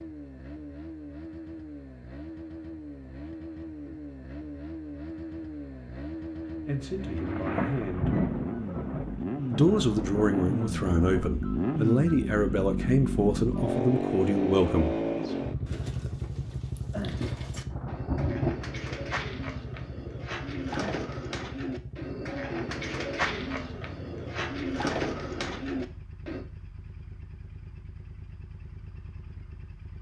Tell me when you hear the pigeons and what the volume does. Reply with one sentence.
The pigeons can be heard from 15.2 to 26.4 s, getting louder.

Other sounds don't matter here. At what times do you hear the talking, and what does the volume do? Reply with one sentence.
The talking can be heard briefly from 6.6 to 8.2 s; and from 9.5 to 14.9 s, at a steady volume.